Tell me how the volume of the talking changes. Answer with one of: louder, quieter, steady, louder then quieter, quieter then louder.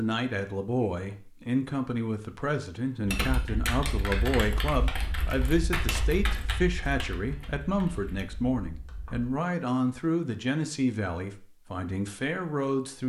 steady.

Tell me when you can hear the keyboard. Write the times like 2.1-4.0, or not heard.
3.0-9.3.